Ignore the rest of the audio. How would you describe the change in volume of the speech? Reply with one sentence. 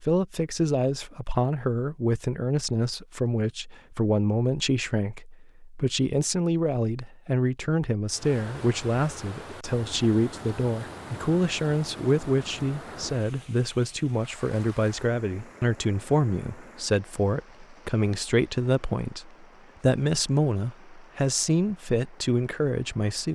The volume of the speech stays about the same.